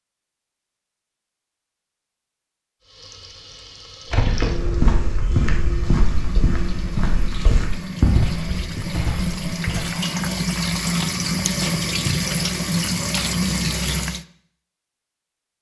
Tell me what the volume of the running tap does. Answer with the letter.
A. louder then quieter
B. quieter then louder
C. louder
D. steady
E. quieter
C.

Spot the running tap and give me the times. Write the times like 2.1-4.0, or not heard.
2.8-14.2.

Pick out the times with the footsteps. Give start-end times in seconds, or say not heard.
4.1-9.9.